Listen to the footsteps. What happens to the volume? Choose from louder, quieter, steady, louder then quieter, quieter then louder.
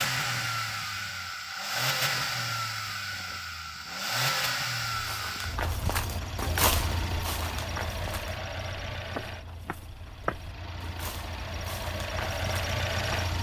quieter.